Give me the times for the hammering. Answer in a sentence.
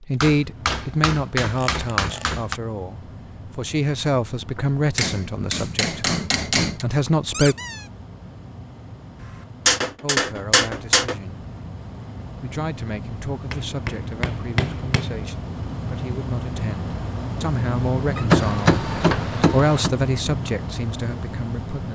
You can hear the hammering from 0.2 to 2.5 s, from 5.0 to 6.8 s, from 9.2 to 11.2 s, from 13.5 to 15.2 s and from 18.3 to 19.9 s.